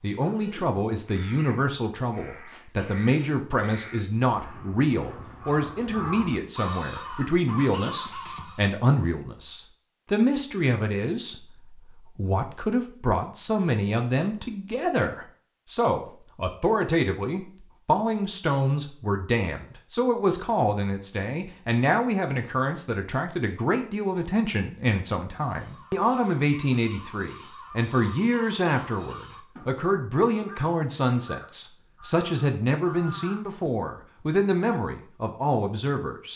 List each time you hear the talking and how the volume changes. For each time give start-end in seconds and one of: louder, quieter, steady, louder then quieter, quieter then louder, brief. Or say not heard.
0.0-36.3 steady.